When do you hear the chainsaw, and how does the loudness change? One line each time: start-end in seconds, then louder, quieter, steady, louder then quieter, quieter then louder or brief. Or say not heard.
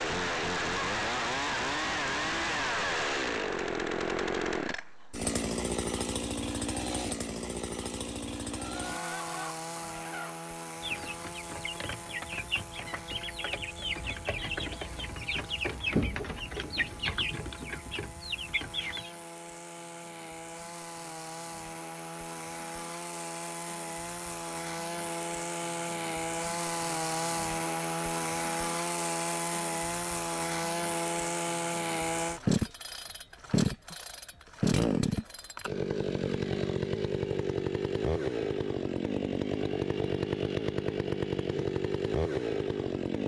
0.0-43.2 quieter then louder.